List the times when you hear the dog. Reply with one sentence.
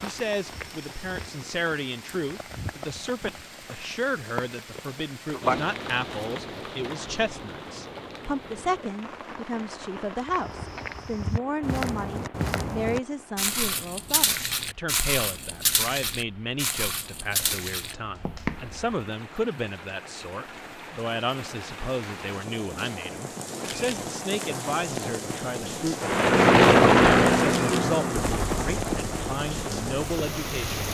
You can't hear the dog here.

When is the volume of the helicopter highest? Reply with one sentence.
The loudest moment of the helicopter is at 27 seconds.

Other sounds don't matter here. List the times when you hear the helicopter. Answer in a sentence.
The helicopter can be heard from 26.0 to 30.8 s.